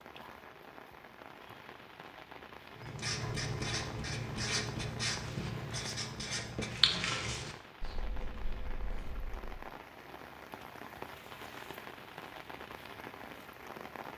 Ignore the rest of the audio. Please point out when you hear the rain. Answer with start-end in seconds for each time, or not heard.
0.0-14.1.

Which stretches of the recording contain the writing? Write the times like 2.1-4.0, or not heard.
2.8-9.5.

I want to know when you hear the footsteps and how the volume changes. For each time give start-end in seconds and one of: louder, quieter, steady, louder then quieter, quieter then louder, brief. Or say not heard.
not heard.